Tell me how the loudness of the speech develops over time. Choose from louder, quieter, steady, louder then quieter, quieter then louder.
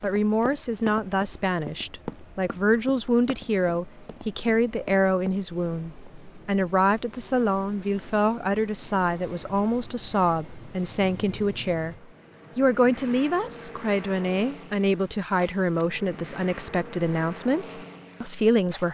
steady.